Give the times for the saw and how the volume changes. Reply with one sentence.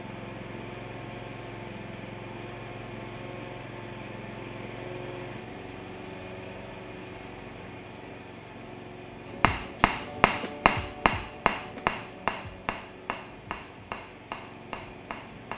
You can't hear the saw here.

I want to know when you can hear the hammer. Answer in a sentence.
The hammer can be heard from 9.3 to 15.5 s.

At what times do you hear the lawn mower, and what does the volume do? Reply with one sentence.
You can hear the lawn mower from 0.0 to 15.5 s, getting quieter.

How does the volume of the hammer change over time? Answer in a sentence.
The loudness of the hammer goes down.